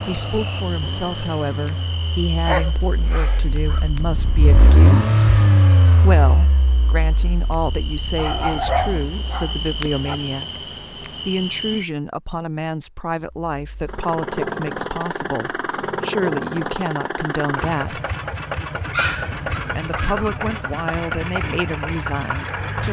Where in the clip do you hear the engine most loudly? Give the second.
5 s.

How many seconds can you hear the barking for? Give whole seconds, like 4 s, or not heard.
5 s.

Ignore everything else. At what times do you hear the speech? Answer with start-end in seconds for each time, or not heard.
0.1-5.2, 6.0-18.0, 19.8-22.8.